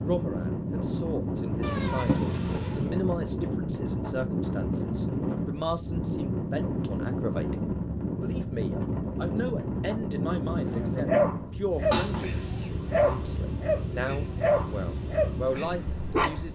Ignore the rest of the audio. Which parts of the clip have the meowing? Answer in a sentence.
The meowing can be heard from 1.6 to 2.9 s and from 11.9 to 12.7 s.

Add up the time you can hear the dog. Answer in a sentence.
The dog can be heard for 6 seconds in total.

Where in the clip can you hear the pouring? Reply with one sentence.
You can't hear the pouring here.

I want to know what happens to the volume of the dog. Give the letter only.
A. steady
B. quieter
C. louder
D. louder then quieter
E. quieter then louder
A.